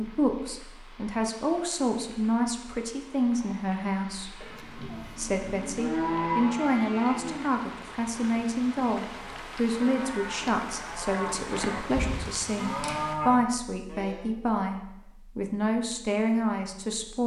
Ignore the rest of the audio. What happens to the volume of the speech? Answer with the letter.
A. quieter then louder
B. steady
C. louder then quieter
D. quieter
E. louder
B.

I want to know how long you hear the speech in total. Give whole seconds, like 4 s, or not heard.
17 s.